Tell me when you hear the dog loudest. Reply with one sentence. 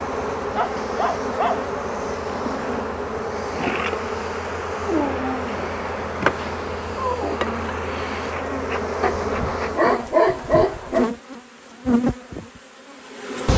The loudest moment of the dog is at 10 seconds.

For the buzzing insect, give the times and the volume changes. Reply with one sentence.
The buzzing insect can be heard from 0.0 to 13.5 s, at a steady volume.